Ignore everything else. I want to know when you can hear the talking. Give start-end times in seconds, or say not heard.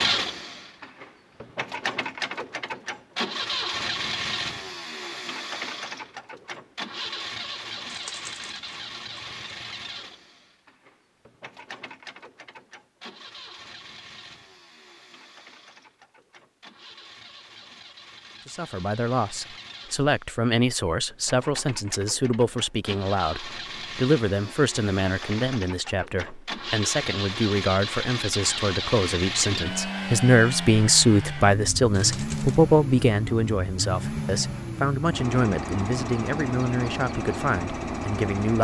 18.4-38.5.